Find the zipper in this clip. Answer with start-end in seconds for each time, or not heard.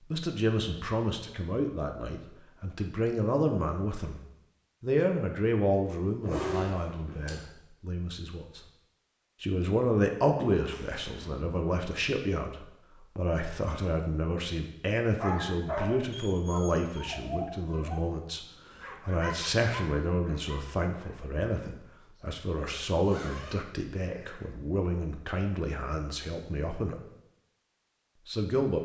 6.2-7.4, 10.6-11.4, 23.0-24.5.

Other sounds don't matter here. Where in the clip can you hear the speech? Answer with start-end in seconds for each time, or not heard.
0.0-4.2, 4.8-8.6, 9.4-27.0, 28.2-28.8.